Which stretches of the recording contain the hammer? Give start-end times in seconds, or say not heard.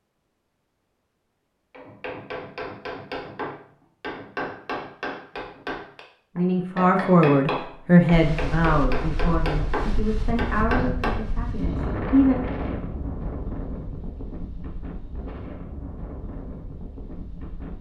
1.7-11.2.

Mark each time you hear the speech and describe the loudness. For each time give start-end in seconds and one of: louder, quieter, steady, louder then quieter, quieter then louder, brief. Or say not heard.
6.3-12.3 quieter.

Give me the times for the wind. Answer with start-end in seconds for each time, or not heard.
8.1-17.7.